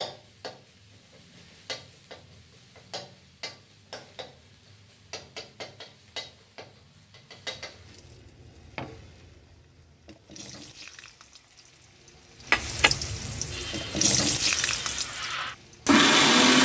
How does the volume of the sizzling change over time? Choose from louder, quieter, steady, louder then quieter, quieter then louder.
louder.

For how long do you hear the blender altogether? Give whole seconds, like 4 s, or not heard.
3 s.